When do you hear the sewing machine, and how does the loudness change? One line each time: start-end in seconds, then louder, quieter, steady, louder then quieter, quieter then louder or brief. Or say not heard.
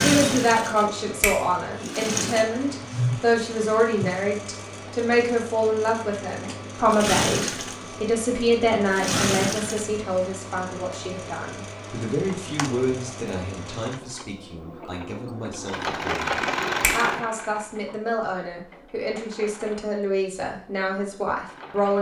0.0-21.9 quieter.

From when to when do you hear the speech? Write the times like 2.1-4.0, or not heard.
0.0-21.9.